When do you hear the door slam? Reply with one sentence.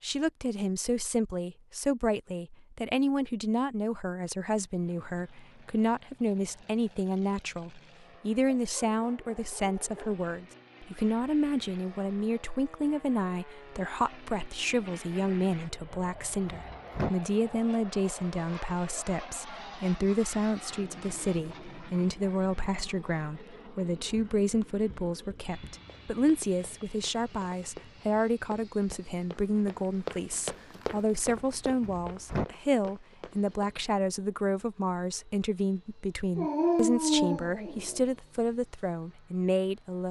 You can hear the door slam from 15.9 to 17.1 s and from 31.5 to 32.5 s.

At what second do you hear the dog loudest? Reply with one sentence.
The volume of the dog peaks at 37 seconds.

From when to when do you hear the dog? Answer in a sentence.
You can hear the dog from 8.6 to 10.2 s and from 36.4 to 38.0 s.